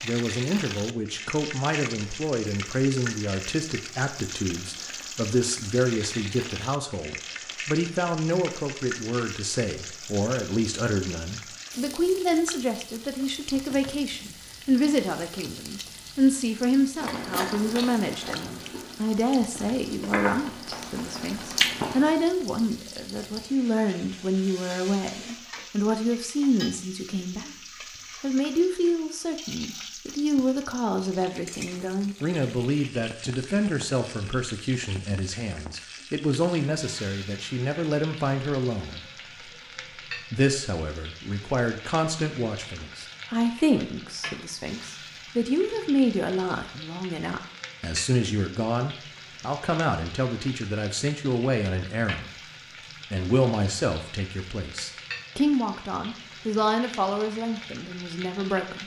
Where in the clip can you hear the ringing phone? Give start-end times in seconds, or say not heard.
not heard.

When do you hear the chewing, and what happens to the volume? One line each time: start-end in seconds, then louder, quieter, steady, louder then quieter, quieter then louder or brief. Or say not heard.
17.0-22.1 quieter then louder.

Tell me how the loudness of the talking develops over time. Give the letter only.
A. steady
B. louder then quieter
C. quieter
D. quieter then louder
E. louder
A.